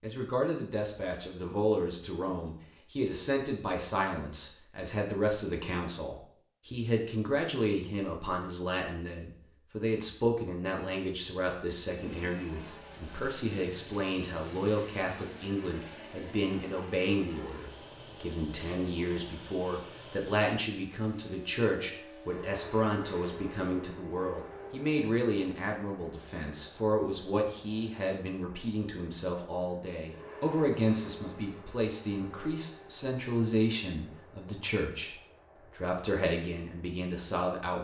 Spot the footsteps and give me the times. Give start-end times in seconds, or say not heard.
not heard.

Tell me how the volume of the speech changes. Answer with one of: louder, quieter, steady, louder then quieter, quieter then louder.
steady.